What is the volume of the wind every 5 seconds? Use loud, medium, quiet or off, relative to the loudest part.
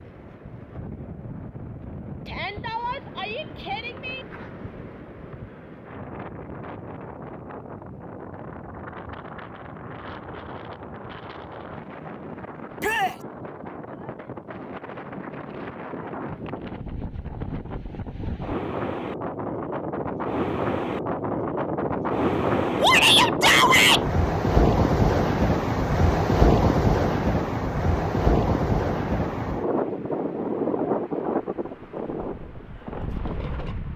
quiet, quiet, quiet, medium, loud, loud, medium.